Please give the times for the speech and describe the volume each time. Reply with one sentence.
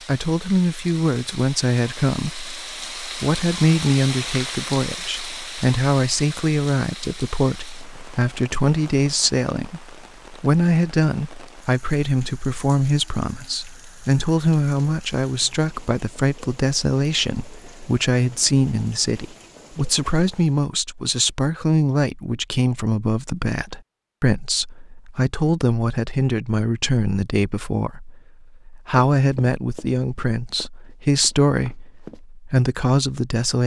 The speech can be heard from 0.1 to 33.6 s, at a steady volume.